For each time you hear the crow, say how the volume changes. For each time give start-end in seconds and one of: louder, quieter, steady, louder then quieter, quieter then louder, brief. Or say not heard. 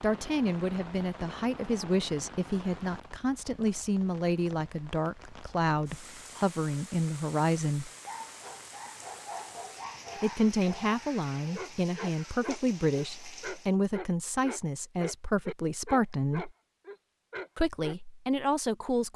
not heard.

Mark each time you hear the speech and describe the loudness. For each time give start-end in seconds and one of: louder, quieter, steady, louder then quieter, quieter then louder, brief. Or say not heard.
0.0-7.9 steady
10.2-16.5 steady
17.6-19.1 brief.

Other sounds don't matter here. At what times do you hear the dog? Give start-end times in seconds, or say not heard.
8.1-17.9.